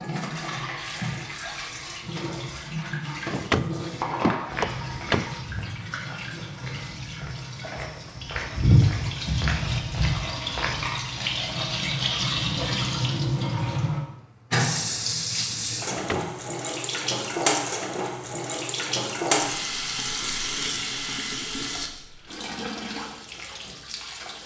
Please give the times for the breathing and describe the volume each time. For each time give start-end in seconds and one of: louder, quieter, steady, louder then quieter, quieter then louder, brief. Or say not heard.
not heard.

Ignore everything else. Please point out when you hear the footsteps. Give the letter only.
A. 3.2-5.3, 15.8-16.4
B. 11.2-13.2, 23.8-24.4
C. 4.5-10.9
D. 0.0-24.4
C.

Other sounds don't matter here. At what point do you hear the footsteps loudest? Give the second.
9 s.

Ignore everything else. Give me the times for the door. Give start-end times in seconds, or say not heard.
3.2-5.3, 15.8-16.4.